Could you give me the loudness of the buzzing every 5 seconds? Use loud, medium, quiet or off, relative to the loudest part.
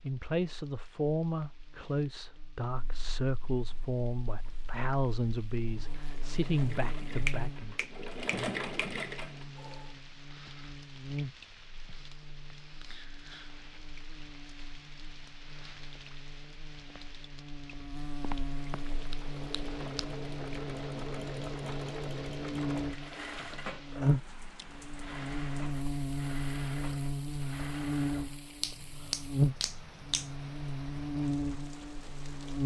quiet, quiet, quiet, quiet, loud, loud, loud.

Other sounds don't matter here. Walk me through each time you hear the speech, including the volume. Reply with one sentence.
You can hear the speech from 0.0 to 7.8 s, at a steady volume.